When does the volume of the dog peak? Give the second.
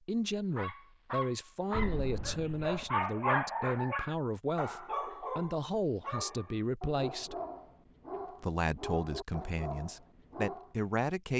3 s.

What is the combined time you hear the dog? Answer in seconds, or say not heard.
10 s.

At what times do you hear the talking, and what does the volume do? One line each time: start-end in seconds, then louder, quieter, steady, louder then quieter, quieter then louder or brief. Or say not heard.
0.1-7.3 steady
8.4-11.3 brief.